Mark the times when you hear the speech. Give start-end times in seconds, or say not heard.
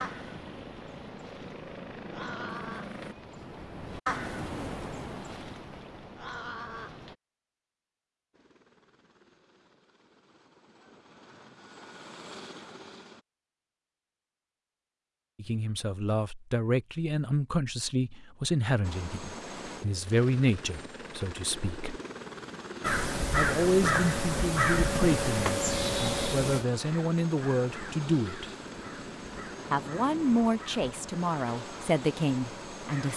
15.3-22.0, 23.4-28.5, 29.7-33.1.